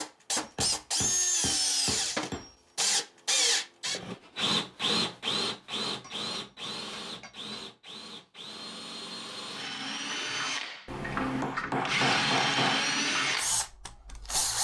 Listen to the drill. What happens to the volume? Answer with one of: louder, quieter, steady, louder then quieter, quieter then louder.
quieter then louder.